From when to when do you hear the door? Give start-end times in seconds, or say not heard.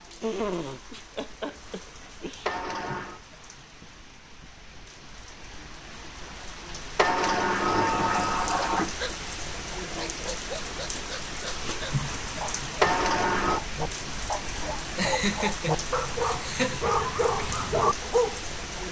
2.5-3.2, 7.0-8.9, 12.8-13.6.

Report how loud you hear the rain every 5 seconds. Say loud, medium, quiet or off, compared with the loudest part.
quiet, loud, loud, loud.